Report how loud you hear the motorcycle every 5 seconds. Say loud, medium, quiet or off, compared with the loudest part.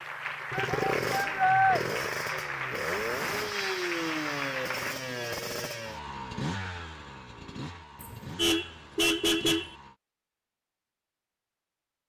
loud, medium, off.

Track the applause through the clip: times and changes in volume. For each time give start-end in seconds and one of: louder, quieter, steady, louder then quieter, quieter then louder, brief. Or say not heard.
0.0-5.0 steady.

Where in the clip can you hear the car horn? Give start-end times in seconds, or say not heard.
8.0-9.8.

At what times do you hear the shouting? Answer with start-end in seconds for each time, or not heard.
0.5-1.8.